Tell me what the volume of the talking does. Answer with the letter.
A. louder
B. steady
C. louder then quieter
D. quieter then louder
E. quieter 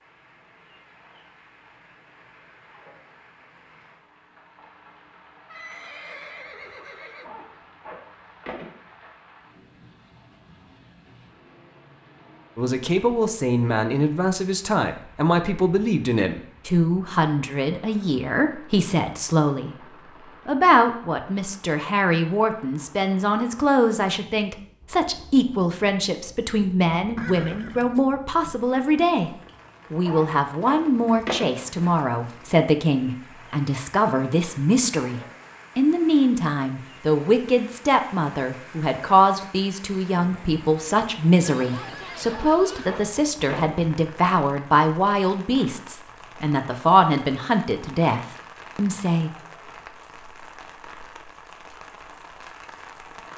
B.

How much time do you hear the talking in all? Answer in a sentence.
The talking can be heard for 36 seconds in total.